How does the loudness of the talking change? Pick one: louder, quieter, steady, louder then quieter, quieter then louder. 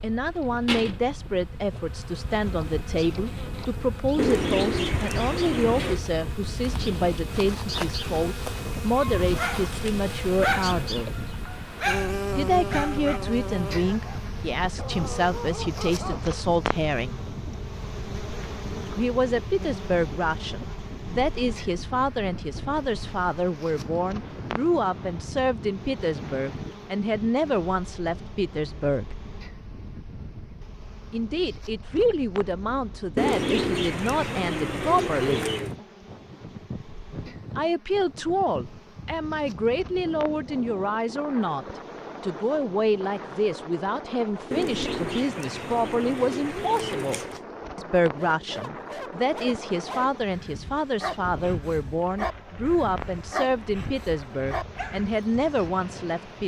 steady.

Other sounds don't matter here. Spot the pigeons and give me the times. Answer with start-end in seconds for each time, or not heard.
4.2-6.0, 33.1-35.8, 44.5-47.4.